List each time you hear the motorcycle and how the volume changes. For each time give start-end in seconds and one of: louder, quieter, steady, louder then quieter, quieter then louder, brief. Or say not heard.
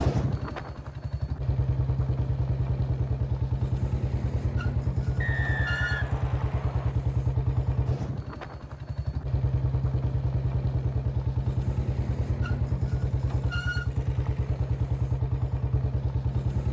0.0-16.6 steady.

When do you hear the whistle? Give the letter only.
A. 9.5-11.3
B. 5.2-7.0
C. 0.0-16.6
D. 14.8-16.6
B.